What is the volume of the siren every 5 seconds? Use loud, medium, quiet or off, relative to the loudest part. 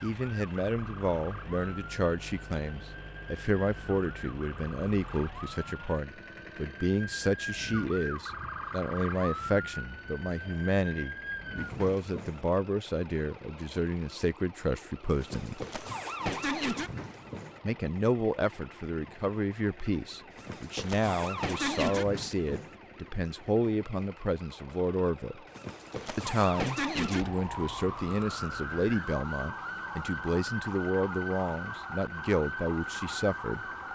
medium, loud, medium, loud, loud, loud, loud.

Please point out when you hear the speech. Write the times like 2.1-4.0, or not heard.
0.0-15.6, 17.6-25.4, 26.1-33.6.